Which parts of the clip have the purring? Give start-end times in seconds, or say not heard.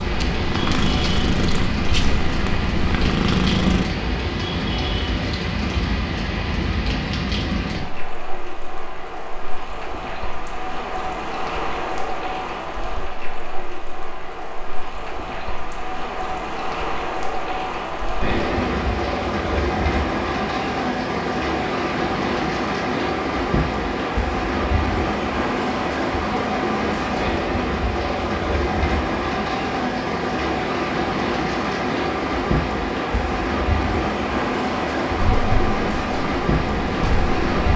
0.0-3.9, 35.4-37.7.